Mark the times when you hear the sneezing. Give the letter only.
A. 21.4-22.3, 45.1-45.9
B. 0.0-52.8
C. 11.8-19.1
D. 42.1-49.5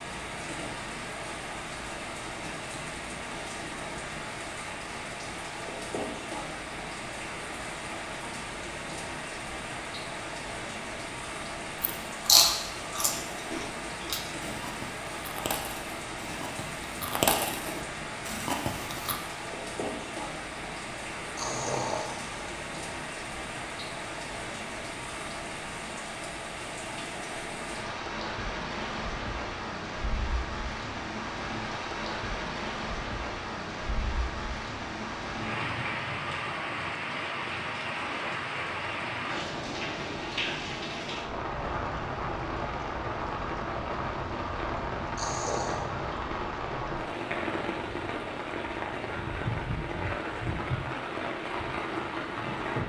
A.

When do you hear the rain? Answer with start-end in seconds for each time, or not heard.
0.0-52.8.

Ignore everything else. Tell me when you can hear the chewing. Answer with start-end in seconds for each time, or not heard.
11.8-19.1.